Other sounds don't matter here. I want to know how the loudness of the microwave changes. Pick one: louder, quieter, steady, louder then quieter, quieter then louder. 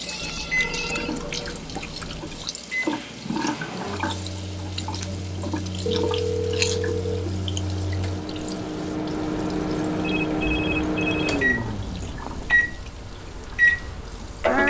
louder.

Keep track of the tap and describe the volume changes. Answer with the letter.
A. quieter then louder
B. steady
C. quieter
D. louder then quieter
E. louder
C.